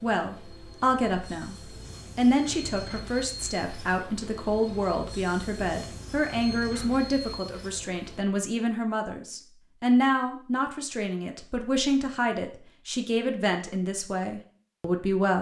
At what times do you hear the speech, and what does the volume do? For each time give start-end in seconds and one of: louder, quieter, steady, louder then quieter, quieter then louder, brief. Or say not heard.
0.0-15.3 steady.